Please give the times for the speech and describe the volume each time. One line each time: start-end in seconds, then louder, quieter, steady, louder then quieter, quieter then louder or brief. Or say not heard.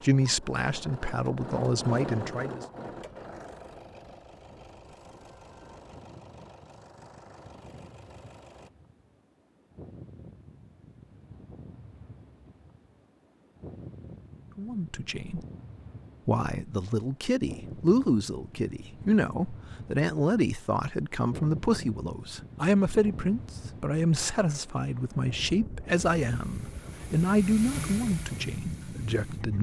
0.0-2.6 brief
14.6-15.4 brief
16.2-29.5 steady.